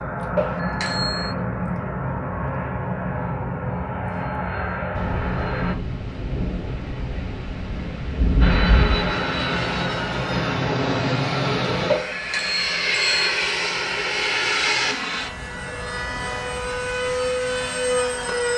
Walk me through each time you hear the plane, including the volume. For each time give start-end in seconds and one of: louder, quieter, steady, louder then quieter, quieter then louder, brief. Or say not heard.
0.0-5.8 steady
8.4-18.5 steady.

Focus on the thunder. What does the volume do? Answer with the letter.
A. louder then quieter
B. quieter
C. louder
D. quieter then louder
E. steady
C.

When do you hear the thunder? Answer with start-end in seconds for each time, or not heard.
5.0-9.2.